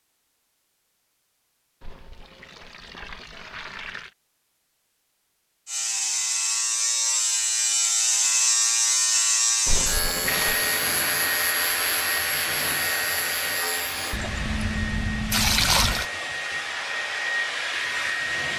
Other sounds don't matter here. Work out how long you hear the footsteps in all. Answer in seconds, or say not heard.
not heard.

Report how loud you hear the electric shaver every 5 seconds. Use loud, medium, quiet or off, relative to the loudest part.
off, loud, medium, off.